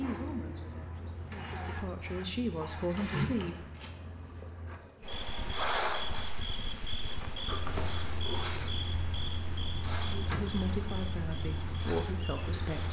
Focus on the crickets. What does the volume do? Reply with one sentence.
The loudness of the crickets goes up, then down.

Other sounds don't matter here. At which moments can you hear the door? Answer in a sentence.
You can hear the door from 3.0 to 4.0 s and from 7.0 to 8.8 s.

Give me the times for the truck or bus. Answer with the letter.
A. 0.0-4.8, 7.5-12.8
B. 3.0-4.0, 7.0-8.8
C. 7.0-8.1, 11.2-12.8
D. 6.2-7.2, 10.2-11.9
A.